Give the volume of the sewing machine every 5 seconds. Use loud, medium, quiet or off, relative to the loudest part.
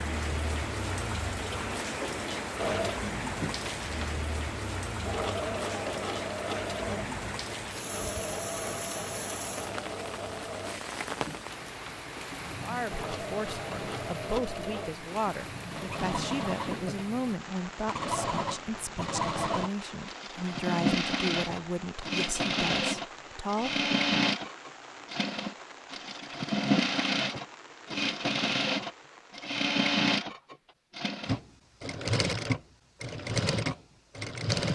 medium, medium, medium, medium, loud, loud, loud.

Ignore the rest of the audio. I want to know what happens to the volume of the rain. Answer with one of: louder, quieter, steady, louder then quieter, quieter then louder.
quieter.